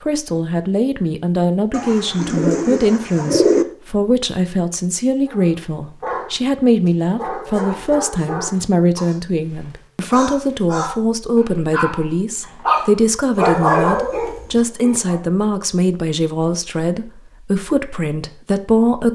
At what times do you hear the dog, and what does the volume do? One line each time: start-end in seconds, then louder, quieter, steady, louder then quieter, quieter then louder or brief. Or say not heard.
5.2-15.2 louder.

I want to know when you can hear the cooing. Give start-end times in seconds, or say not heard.
1.7-3.6.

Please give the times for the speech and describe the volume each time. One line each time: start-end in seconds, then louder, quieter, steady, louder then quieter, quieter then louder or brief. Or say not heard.
0.0-19.0 steady.